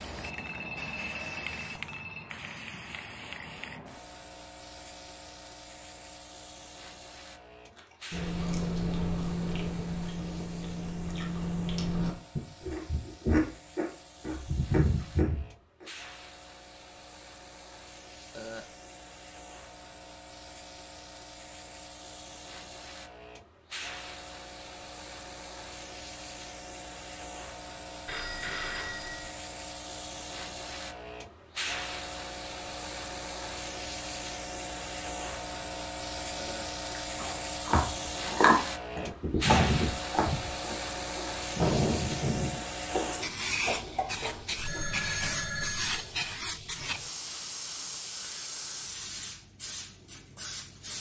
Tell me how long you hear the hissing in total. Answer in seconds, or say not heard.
51 s.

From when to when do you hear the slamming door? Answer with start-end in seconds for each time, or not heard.
not heard.